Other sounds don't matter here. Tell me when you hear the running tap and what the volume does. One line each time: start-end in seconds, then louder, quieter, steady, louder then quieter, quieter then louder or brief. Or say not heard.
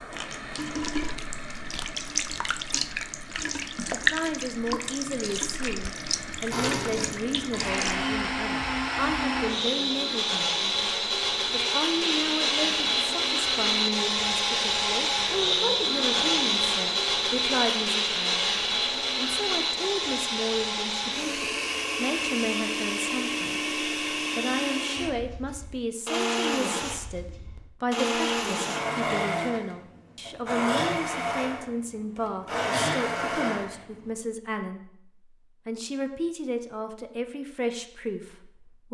0.0-8.1 louder then quieter.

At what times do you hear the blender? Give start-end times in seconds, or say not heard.
6.5-34.1.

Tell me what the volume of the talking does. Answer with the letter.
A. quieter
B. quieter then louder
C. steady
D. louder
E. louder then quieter
C.